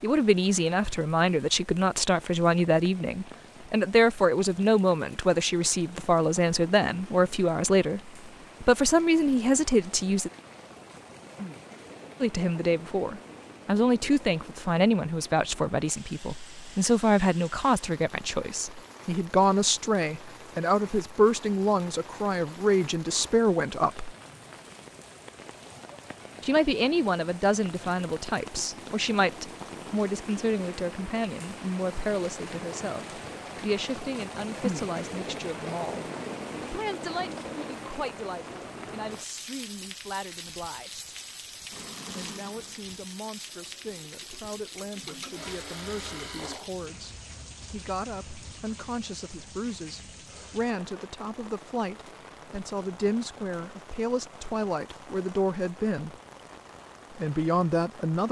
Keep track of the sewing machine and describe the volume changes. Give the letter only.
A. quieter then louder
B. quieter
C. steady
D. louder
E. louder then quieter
A.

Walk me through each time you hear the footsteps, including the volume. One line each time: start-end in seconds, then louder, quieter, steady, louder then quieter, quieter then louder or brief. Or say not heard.
not heard.